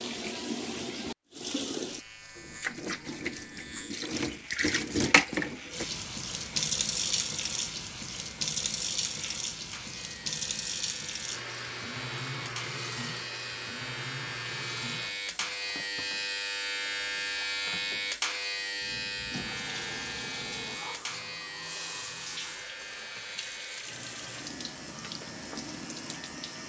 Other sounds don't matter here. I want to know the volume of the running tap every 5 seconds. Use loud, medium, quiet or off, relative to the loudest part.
loud, loud, medium, quiet, medium, medium.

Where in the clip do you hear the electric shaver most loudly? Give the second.
18 s.